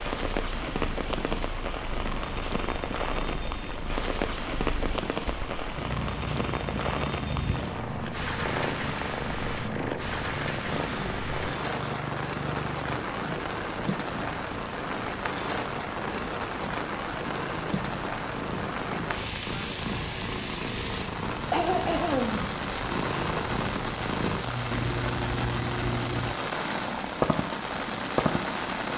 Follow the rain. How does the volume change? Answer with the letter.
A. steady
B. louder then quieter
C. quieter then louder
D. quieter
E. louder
A.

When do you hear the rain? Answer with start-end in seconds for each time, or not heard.
0.0-28.9.